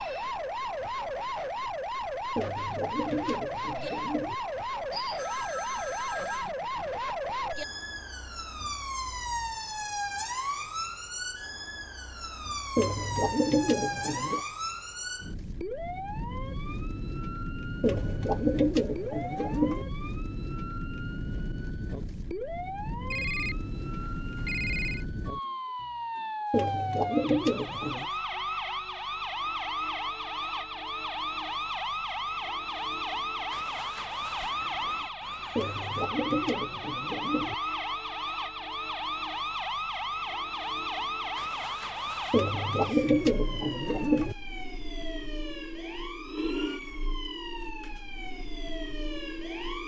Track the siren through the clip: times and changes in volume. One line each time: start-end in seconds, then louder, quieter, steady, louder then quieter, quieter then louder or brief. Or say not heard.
0.0-49.8 steady.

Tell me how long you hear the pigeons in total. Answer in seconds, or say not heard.
11 s.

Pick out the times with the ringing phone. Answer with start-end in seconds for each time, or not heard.
4.9-6.5, 23.1-25.1, 34.4-36.0.